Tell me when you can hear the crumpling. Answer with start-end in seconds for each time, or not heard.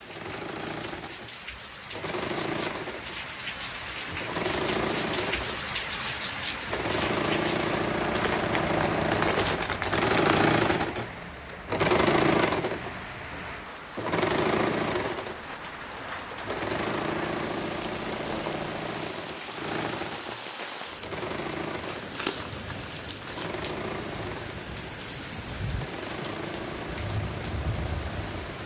8.1-10.2, 21.8-23.5.